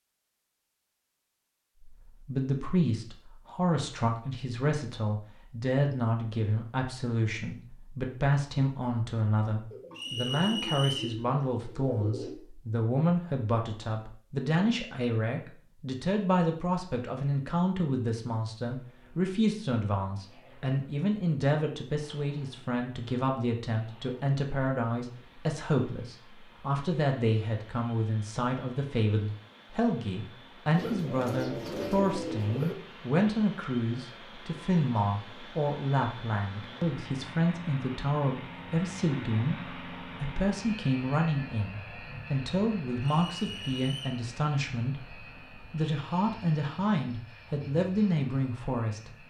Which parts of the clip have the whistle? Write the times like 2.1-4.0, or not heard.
9.9-11.2, 43.0-44.2.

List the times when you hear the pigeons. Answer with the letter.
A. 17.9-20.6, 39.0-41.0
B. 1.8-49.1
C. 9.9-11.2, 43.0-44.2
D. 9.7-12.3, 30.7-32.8
D.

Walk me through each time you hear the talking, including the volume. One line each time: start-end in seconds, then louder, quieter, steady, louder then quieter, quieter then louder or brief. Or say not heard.
1.8-49.1 steady.